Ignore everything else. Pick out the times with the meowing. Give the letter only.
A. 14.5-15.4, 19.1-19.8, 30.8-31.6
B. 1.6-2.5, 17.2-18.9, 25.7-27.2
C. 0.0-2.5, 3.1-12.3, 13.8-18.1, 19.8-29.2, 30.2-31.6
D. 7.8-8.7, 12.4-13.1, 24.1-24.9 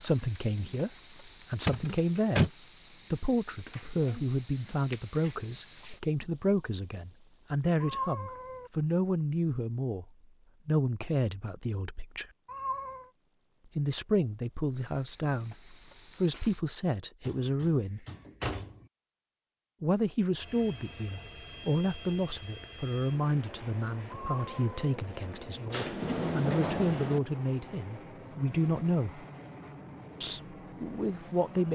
D.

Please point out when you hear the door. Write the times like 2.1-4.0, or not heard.
1.6-2.5, 17.2-18.9, 25.7-27.2.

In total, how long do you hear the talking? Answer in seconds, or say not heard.
27 s.